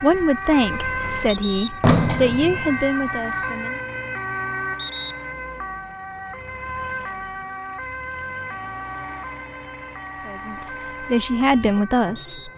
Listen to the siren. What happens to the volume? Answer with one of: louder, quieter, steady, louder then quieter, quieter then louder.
quieter.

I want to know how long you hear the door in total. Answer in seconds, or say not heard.
2 s.